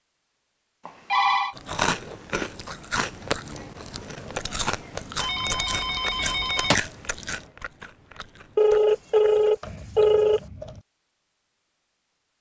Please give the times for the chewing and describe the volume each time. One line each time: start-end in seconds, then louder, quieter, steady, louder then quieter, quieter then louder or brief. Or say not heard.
1.6-10.8 quieter.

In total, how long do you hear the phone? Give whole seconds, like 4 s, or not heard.
4 s.